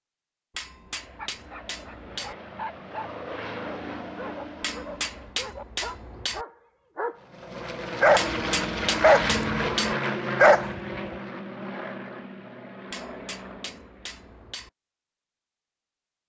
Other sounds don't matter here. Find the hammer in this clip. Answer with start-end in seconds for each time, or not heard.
0.5-2.4, 4.6-6.5, 8.2-9.9, 12.9-14.7.